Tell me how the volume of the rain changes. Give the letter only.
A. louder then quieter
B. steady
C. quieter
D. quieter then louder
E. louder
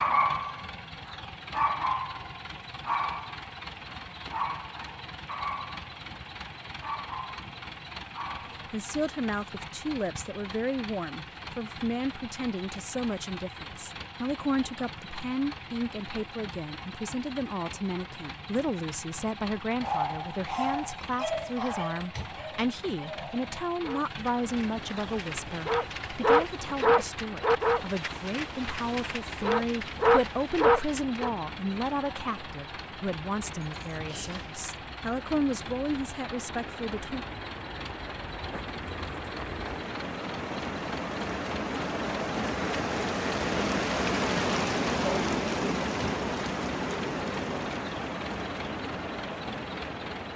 E.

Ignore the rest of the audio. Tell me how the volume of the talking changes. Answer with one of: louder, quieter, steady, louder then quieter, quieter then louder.
steady.